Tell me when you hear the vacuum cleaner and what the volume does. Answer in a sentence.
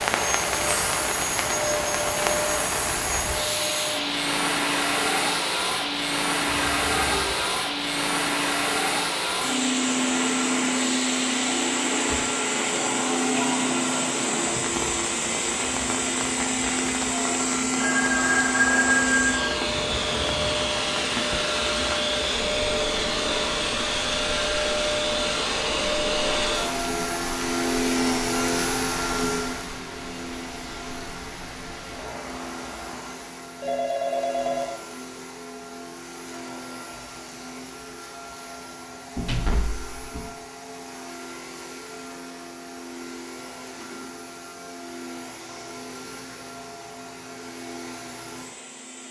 You can hear the vacuum cleaner from 0.0 to 49.0 s, getting quieter.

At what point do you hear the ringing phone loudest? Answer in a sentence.
The loudest moment of the ringing phone is at 19 seconds.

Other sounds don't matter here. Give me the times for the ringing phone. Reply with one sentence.
You can hear the ringing phone from 6.5 to 7.5 s, from 17.8 to 19.6 s and from 33.6 to 34.8 s.